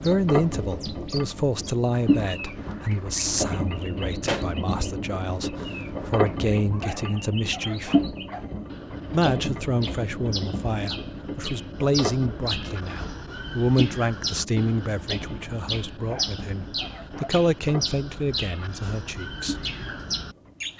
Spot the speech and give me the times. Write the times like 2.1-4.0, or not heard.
0.0-8.2, 9.1-19.6.